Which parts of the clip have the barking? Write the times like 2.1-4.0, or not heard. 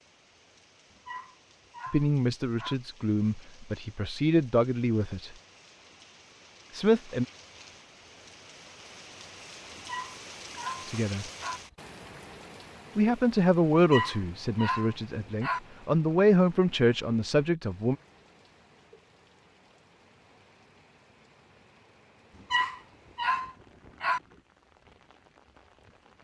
0.9-2.8, 9.8-11.6, 13.8-15.6, 22.4-24.2.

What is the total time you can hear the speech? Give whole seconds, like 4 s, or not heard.
9 s.